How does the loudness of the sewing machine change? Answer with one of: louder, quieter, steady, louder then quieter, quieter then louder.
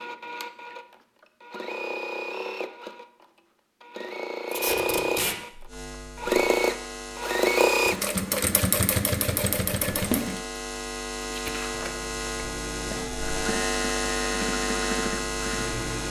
louder then quieter.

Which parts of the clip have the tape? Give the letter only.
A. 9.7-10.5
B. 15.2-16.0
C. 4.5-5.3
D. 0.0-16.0
C.